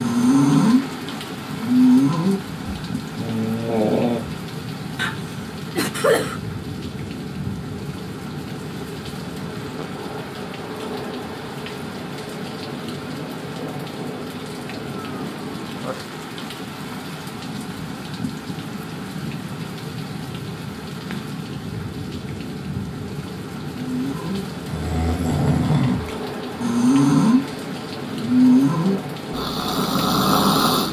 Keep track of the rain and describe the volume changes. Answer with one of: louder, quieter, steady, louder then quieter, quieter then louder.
steady.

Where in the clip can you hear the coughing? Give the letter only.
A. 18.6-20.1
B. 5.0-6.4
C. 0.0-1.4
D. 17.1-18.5
B.